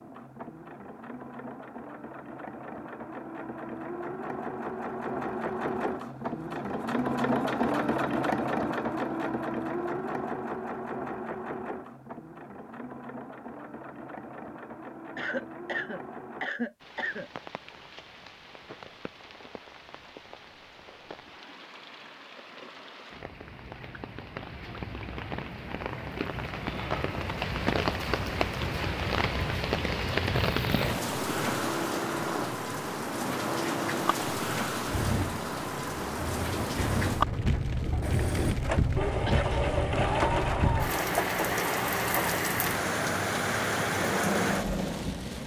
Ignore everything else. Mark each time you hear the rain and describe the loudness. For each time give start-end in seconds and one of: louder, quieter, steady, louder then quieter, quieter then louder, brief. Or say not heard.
16.8-45.4 louder.